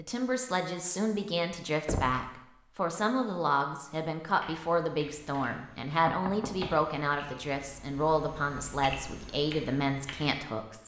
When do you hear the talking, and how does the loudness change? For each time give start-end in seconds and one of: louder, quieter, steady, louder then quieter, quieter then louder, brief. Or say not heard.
0.0-10.8 steady.